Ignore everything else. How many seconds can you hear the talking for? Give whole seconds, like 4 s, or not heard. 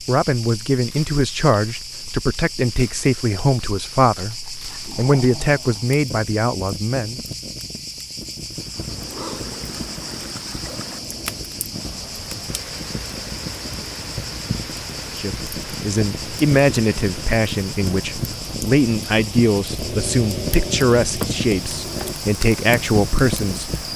16 s.